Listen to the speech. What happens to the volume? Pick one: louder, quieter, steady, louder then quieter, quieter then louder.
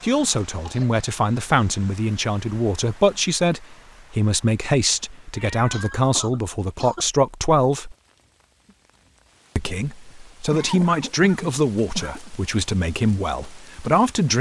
steady.